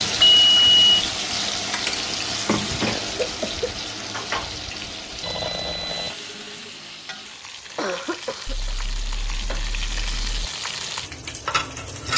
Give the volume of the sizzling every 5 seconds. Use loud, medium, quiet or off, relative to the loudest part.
loud, medium, loud.